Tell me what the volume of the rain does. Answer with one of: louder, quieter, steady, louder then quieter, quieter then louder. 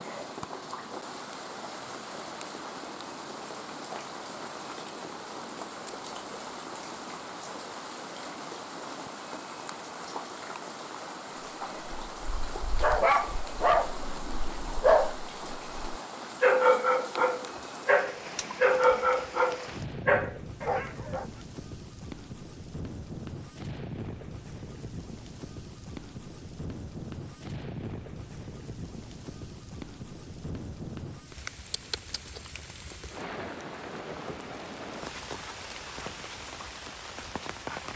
steady.